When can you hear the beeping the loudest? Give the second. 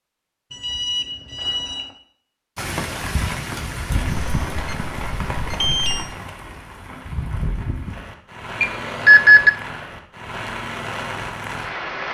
9 s.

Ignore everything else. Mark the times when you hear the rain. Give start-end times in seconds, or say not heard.
2.5-12.0.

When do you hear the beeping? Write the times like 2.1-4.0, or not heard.
0.5-1.9, 4.1-6.1, 8.6-9.5.